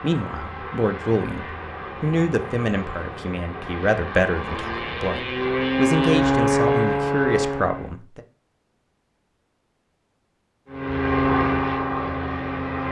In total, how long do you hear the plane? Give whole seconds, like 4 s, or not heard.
10 s.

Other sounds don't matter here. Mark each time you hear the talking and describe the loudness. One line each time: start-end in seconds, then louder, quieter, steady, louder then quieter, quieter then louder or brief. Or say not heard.
0.0-8.2 steady.